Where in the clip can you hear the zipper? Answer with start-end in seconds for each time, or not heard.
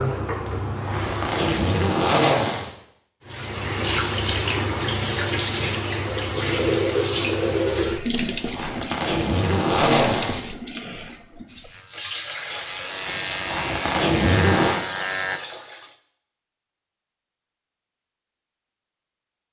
0.5-2.7, 8.2-10.4, 13.1-14.8.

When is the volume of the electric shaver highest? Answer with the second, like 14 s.
15 s.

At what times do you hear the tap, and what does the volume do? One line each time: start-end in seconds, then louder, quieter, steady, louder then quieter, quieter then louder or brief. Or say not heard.
0.0-1.8 brief
3.2-15.9 quieter.